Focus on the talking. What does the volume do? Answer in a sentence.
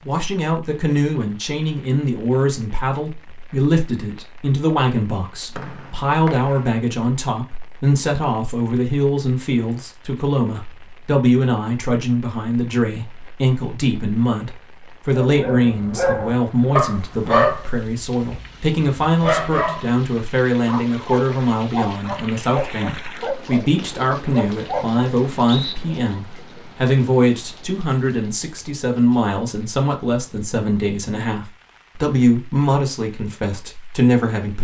The loudness of the talking stays about the same.